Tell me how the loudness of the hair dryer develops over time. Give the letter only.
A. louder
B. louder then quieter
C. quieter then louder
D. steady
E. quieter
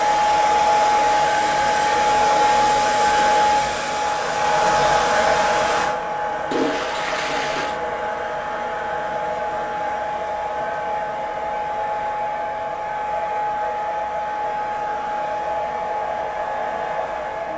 E.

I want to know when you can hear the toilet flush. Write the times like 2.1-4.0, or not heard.
6.5-7.8.